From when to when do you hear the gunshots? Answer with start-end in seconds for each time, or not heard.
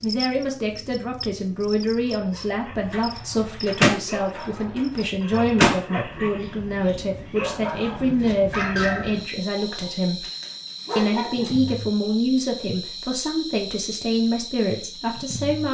2.7-5.8.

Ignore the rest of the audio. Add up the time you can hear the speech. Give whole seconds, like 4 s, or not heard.
15 s.